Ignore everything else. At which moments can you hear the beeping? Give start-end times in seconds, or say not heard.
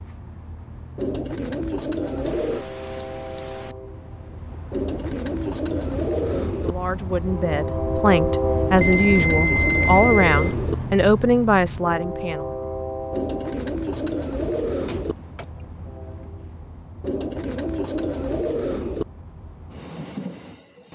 2.2-3.8, 8.8-10.6, 14.8-15.5.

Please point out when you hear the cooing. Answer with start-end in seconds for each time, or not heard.
0.9-2.6, 4.7-6.8, 8.8-10.8, 13.1-15.2, 17.0-19.1.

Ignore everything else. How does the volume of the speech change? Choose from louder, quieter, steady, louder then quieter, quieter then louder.
louder.